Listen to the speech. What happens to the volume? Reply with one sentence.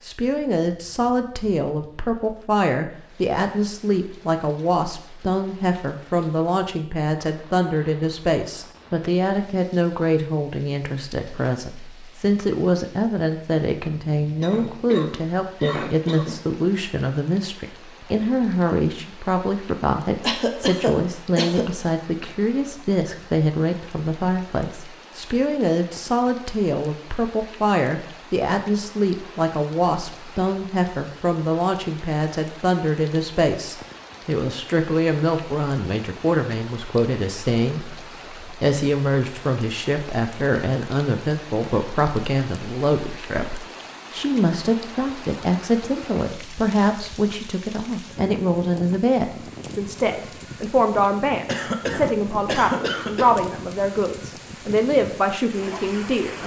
The volume of the speech stays about the same.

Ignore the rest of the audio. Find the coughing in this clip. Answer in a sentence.
You can hear the coughing from 14.4 to 16.4 s, from 20.2 to 21.9 s and from 51.5 to 53.4 s.